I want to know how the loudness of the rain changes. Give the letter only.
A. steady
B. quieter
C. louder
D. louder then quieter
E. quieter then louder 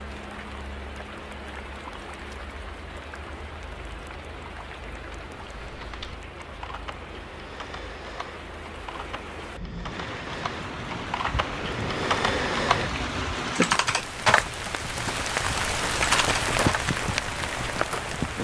C.